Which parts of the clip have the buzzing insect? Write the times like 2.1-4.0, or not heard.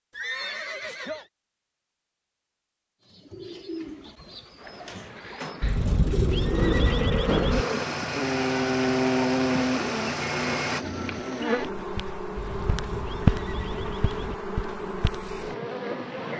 4.5-16.3.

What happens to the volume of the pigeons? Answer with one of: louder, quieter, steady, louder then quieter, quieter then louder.
quieter then louder.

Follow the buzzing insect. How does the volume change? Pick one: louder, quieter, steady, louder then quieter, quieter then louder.
louder then quieter.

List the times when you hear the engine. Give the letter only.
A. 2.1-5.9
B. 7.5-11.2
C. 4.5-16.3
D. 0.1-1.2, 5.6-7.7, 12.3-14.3
B.